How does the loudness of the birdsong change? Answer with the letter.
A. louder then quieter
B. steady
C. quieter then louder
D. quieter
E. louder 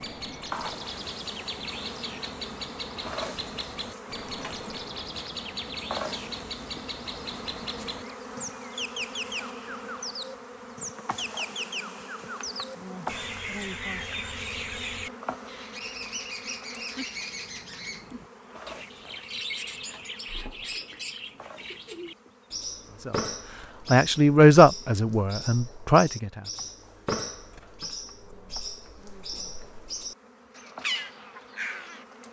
B.